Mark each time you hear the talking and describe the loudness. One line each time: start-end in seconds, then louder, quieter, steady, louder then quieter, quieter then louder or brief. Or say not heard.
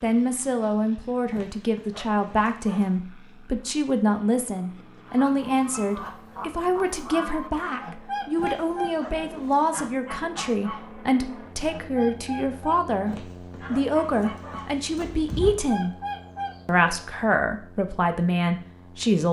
0.0-15.9 steady
16.6-19.2 brief.